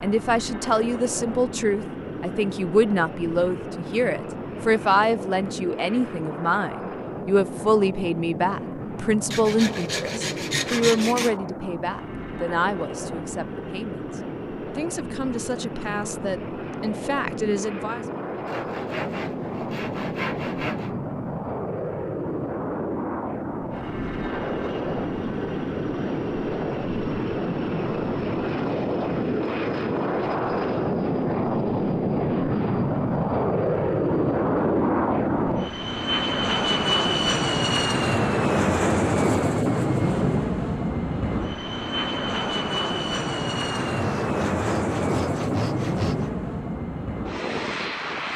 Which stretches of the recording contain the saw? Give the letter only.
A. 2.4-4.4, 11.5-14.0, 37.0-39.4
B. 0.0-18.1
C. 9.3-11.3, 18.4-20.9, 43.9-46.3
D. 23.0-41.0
C.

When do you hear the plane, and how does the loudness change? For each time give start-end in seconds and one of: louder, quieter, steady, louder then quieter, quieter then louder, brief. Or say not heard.
0.0-48.3 louder.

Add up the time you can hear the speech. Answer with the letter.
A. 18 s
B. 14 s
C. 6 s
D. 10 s
A.